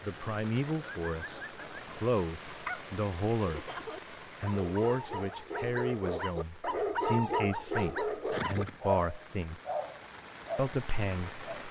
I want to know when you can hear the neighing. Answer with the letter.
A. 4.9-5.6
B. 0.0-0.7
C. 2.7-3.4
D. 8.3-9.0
D.